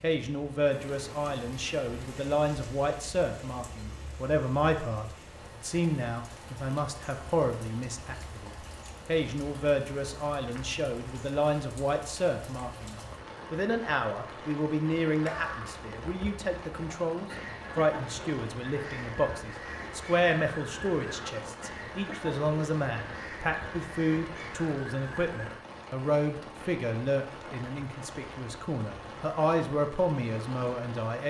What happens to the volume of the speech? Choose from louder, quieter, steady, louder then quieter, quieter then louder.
steady.